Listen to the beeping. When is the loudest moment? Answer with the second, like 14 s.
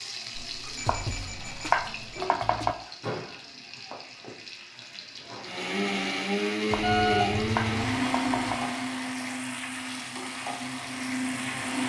7 s.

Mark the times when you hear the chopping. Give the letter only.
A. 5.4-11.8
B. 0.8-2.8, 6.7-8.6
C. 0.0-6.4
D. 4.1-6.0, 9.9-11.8
B.